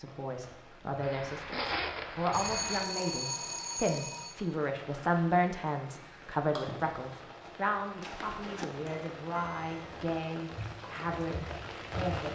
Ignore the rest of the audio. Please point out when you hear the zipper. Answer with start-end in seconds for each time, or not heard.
1.0-2.9, 8.0-8.7.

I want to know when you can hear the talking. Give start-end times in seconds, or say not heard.
0.0-12.2.